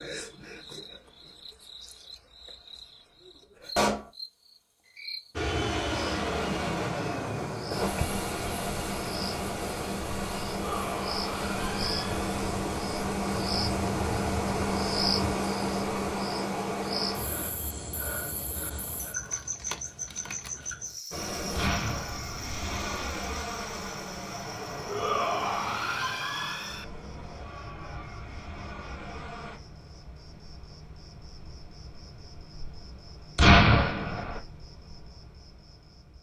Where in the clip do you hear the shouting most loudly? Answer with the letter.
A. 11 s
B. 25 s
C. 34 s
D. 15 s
B.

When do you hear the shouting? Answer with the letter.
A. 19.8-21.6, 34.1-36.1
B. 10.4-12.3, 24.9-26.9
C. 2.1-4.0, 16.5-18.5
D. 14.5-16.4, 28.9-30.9
B.